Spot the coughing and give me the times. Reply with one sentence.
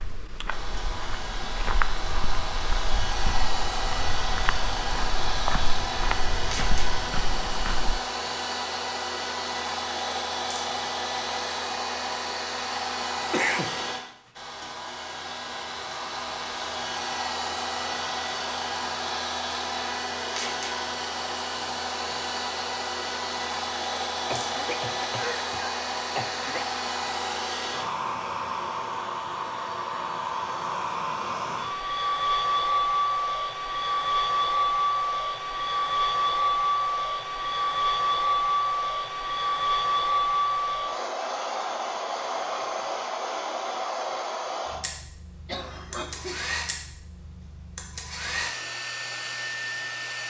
The coughing can be heard from 13.3 to 13.9 s, from 24.3 to 26.8 s and from 45.5 to 46.4 s.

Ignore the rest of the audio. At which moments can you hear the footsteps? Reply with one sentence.
You can hear the footsteps from 0.0 to 8.0 s.